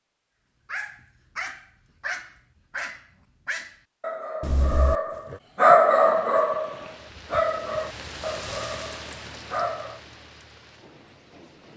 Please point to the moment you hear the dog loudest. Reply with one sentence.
The loudest moment of the dog is at 6 seconds.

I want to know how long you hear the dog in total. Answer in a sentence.
You can hear the dog for 9 seconds altogether.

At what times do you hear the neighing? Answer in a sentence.
The neighing can be heard from 4.4 to 5.4 s.